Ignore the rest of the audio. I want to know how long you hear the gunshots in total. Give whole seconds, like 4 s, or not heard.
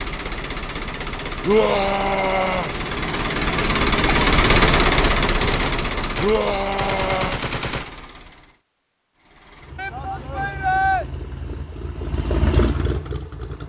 4 s.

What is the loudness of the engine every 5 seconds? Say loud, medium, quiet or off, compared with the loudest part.
loud, medium, medium.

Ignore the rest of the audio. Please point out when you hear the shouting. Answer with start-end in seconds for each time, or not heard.
1.4-2.8, 6.2-7.3, 9.8-11.1.